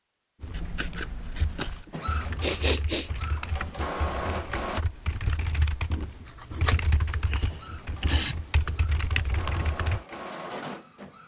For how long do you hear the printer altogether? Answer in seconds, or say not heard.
7 s.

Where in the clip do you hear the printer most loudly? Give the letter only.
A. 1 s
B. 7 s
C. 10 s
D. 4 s
D.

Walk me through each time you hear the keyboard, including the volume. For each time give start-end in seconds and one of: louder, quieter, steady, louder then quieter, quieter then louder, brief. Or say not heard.
0.4-10.1 louder.